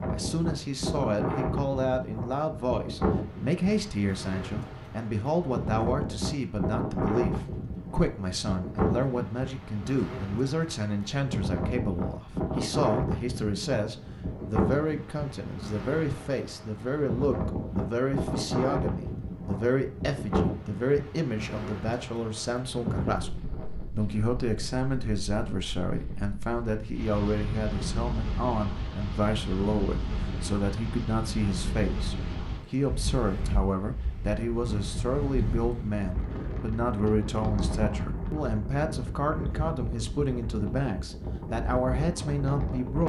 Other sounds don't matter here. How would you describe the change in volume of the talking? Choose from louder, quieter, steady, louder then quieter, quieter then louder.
steady.